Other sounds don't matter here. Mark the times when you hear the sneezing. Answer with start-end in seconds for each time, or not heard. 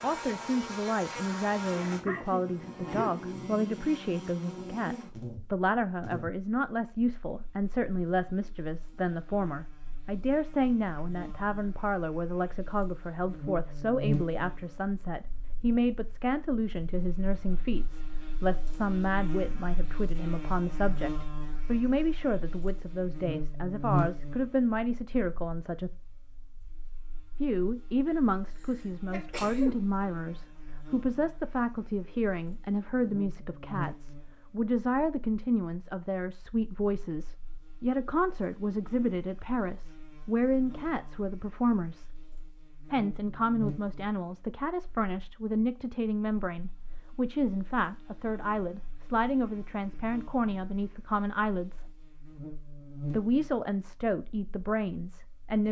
2.0-3.2, 28.6-29.8.